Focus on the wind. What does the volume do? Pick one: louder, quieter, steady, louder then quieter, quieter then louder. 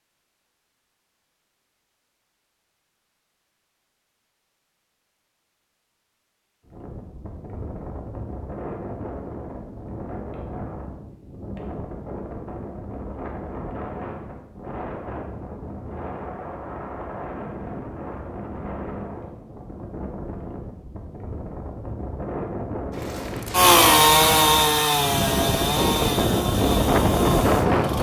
louder.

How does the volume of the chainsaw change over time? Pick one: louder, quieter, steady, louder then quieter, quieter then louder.
quieter.